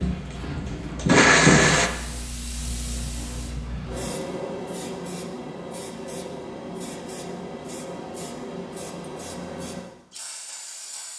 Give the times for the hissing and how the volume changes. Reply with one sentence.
The hissing can be heard from 0.0 to 11.1 s, getting quieter.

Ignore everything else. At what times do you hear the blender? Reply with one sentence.
You can hear the blender from 0.0 to 1.9 s.